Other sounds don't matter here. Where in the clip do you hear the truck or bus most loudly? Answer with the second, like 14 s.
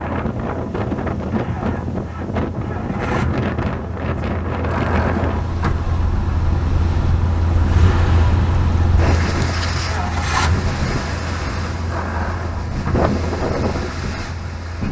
8 s.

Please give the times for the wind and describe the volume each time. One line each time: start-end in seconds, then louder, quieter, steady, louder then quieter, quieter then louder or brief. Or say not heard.
0.0-14.8 quieter then louder.